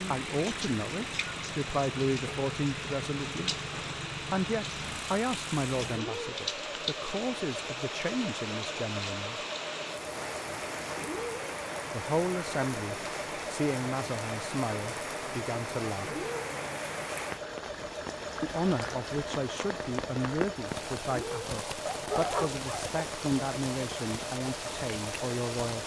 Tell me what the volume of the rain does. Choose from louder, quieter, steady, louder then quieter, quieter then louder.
steady.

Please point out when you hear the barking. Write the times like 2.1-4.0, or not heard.
21.9-23.1.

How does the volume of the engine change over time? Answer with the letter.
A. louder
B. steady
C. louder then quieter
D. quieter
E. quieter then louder
B.